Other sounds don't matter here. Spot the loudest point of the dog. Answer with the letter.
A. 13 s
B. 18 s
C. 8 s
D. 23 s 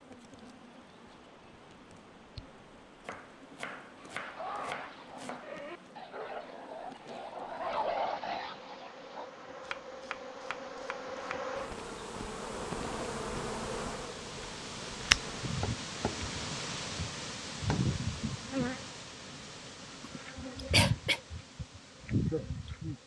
C.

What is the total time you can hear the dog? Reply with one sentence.
You can hear the dog for 5 seconds altogether.